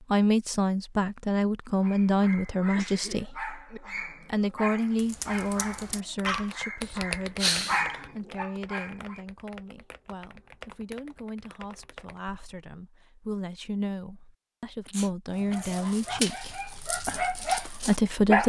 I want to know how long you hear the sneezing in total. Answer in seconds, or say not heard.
3 s.